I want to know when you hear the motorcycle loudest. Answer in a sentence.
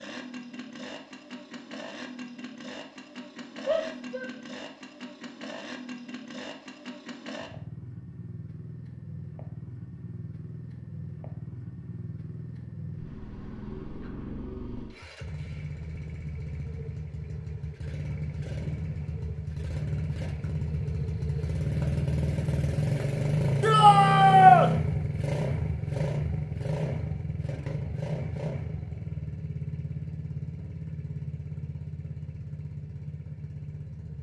The volume of the motorcycle peaks at 24 seconds.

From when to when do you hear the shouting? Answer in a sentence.
You can hear the shouting from 3.6 to 4.3 s and from 23.6 to 24.7 s.